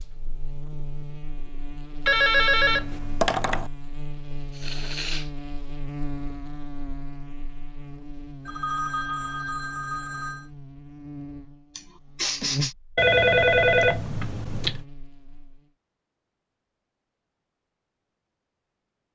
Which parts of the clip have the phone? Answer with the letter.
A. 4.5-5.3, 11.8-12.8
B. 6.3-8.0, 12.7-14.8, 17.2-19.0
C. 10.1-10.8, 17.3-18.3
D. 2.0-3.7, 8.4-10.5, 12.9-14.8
D.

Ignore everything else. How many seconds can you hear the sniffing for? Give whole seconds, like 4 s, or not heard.
2 s.